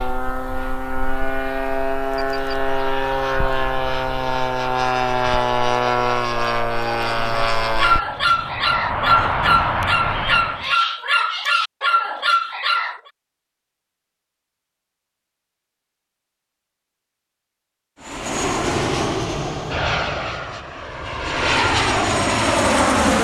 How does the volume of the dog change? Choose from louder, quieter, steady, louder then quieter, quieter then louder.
steady.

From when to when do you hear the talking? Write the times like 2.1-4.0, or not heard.
not heard.